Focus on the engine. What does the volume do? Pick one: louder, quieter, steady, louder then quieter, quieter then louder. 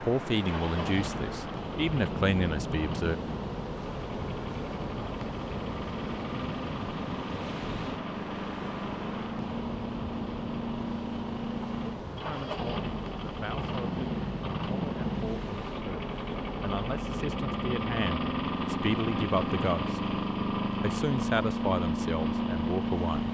louder.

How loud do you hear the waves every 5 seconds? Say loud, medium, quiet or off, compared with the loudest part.
loud, loud, loud, medium, medium.